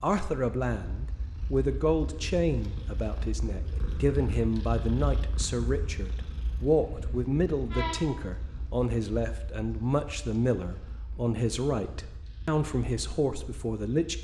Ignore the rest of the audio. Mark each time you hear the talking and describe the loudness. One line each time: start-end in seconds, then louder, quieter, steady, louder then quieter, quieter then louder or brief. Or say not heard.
0.0-14.1 steady.